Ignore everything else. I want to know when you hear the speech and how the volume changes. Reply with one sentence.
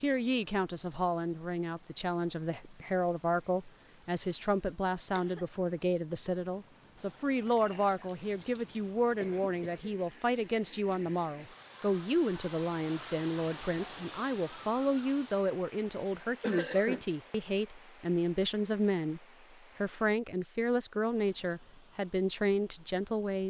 You can hear the speech from 0.0 to 23.4 s, at a steady volume.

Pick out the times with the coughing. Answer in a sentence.
You can hear the coughing from 5.0 to 5.5 s, from 9.2 to 10.0 s and from 16.4 to 17.1 s.